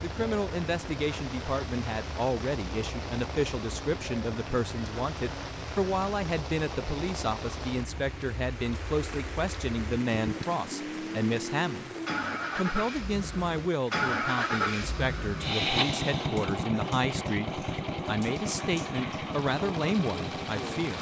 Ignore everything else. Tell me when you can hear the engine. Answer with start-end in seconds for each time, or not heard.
0.0-20.9.